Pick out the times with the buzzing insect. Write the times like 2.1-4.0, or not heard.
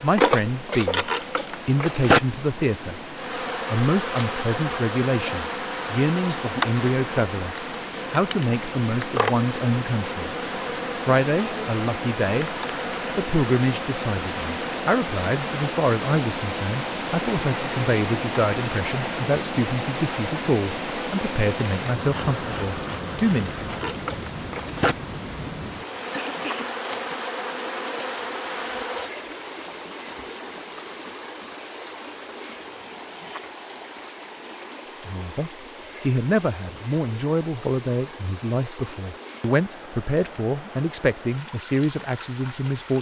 0.0-29.1.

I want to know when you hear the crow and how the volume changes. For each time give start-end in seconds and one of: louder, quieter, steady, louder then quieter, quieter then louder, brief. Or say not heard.
not heard.